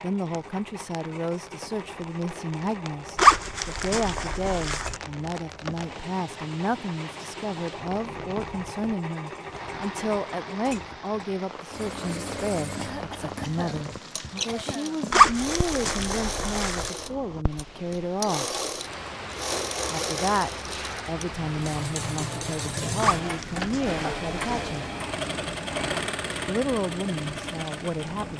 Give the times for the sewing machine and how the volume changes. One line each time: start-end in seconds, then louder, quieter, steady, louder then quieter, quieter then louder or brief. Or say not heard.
0.0-28.3 louder.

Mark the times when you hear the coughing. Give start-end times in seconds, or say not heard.
12.8-15.1.